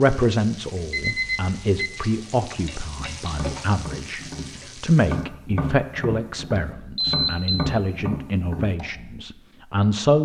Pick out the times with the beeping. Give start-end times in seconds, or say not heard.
0.9-1.9, 7.0-7.6.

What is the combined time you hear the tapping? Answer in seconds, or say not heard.
6 s.